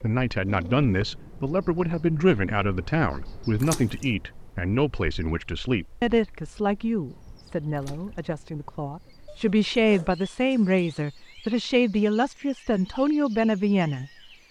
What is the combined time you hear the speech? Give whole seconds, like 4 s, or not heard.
14 s.